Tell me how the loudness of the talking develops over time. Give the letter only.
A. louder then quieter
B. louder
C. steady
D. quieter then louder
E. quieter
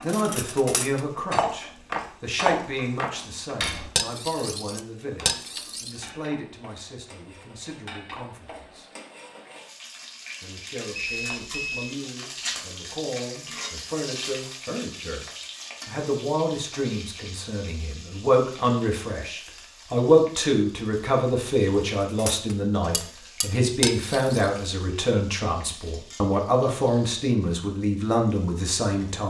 D.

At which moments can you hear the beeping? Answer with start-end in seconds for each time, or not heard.
10.9-11.9.